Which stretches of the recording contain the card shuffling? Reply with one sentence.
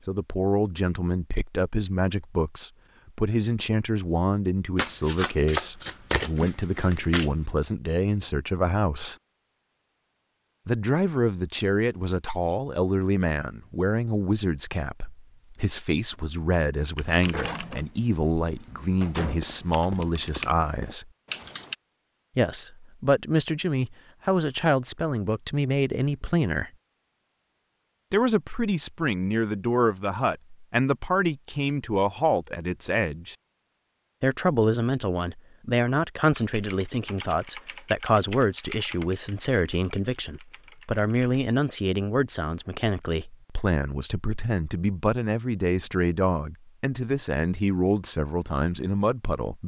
You can hear the card shuffling from 4.8 to 7.3 s.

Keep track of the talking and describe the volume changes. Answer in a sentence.
The volume of the talking stays about the same.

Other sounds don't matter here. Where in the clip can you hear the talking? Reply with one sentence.
You can hear the talking from 0.1 to 9.2 s, from 10.7 to 21.1 s, from 22.4 to 26.7 s, from 28.1 to 33.4 s and from 34.2 to 49.6 s.